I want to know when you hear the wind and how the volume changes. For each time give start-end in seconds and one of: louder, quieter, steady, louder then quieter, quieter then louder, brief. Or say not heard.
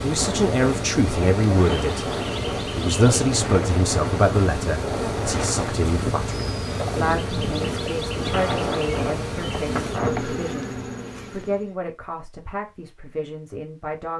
0.0-10.2 steady.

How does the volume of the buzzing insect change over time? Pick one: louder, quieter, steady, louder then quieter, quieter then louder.
steady.